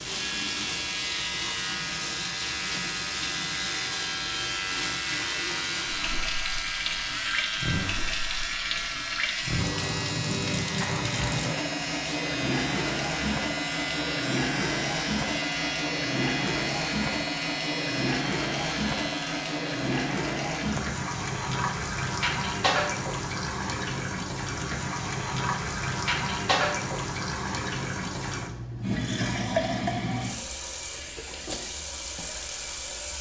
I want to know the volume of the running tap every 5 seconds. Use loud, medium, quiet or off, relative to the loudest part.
medium, loud, loud, loud, loud, loud, medium.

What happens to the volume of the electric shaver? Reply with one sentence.
The volume of the electric shaver stays about the same.